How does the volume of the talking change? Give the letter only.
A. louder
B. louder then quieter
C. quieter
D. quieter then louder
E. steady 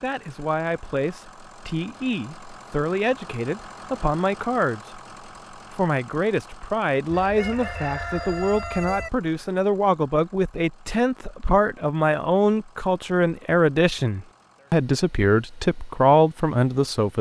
A.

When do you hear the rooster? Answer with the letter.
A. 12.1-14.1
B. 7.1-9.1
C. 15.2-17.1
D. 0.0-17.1
B.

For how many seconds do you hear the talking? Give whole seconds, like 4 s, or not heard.
17 s.